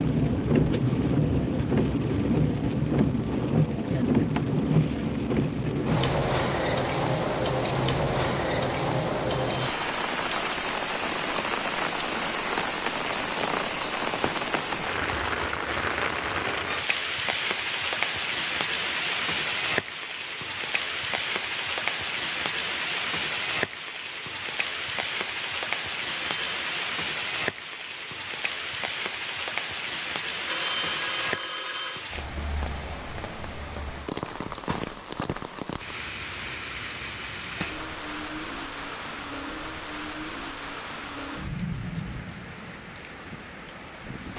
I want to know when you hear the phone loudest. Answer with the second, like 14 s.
31 s.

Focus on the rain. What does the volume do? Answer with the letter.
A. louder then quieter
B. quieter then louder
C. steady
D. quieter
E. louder
D.